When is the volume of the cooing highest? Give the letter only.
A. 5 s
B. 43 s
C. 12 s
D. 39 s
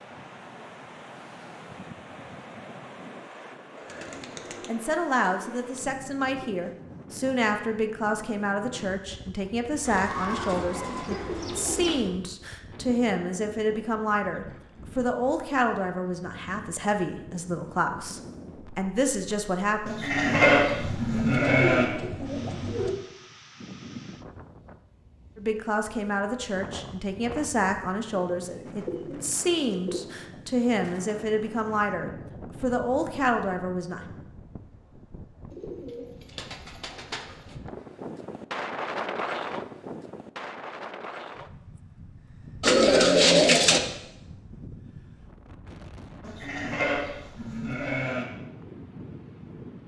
B.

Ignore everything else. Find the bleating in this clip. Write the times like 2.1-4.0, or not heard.
19.9-21.9, 46.2-48.2.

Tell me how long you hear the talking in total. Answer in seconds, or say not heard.
24 s.